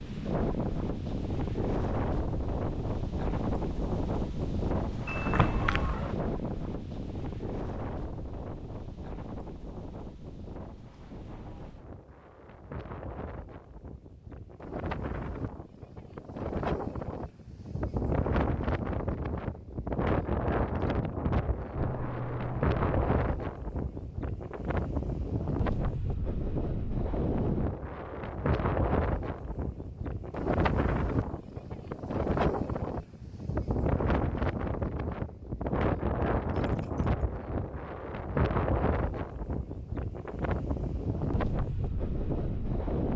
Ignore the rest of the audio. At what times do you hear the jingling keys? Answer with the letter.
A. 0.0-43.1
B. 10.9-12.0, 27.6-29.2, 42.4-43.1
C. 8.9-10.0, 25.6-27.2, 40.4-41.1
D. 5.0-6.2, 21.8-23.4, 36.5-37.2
D.